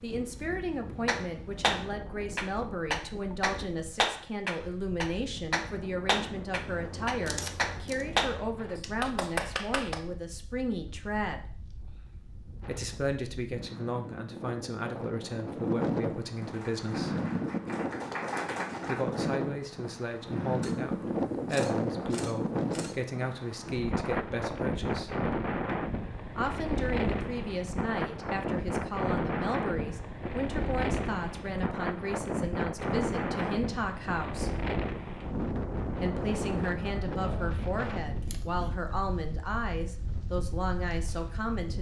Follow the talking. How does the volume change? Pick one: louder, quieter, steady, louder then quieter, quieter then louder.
steady.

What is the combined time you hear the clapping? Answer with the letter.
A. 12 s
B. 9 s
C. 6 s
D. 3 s
A.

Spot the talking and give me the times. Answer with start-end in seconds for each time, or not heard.
0.0-11.5, 12.6-17.1, 18.9-25.1, 26.4-34.5, 35.9-41.7.